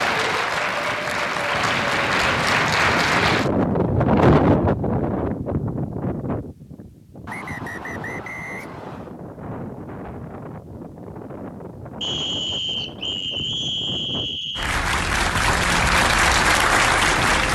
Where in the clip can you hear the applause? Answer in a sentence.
The applause can be heard from 0.0 to 3.5 s and from 14.6 to 17.5 s.